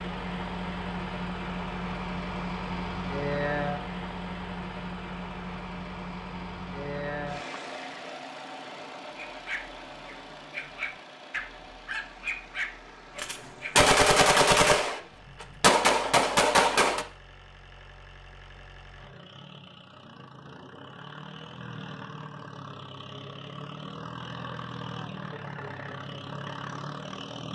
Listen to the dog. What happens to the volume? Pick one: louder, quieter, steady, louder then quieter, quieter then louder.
louder then quieter.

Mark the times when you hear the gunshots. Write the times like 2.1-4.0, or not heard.
13.2-17.1.